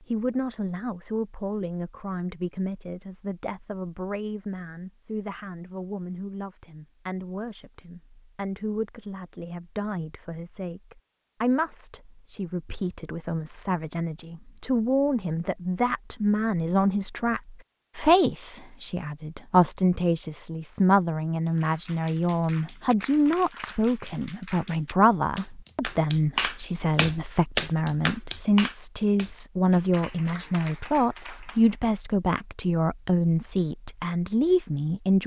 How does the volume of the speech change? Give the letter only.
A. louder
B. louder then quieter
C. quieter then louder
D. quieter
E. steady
A.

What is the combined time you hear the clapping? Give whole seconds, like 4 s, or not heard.
10 s.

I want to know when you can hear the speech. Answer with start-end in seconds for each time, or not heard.
0.1-35.2.